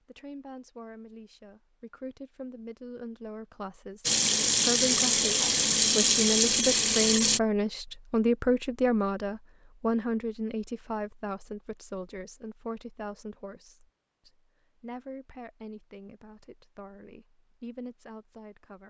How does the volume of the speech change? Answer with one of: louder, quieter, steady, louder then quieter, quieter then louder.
louder then quieter.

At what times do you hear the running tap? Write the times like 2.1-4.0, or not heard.
4.0-7.4.